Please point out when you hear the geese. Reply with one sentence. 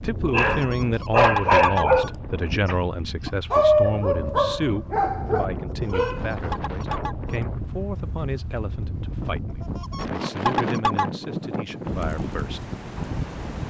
The geese can be heard from 0.4 to 2.1 s, from 5.7 to 7.4 s and from 9.6 to 11.1 s.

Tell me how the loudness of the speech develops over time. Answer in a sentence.
The loudness of the speech goes down.